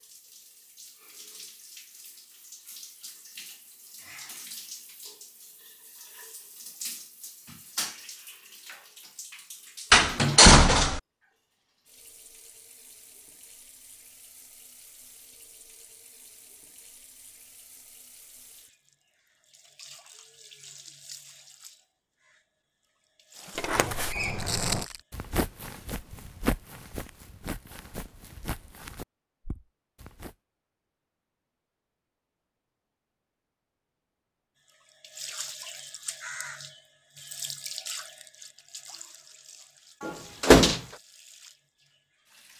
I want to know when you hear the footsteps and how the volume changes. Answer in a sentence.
You can hear the footsteps from 23.4 to 30.4 s, getting quieter.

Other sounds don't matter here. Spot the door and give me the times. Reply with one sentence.
The door can be heard from 9.9 to 11.0 s, from 23.6 to 24.9 s and from 40.0 to 40.8 s.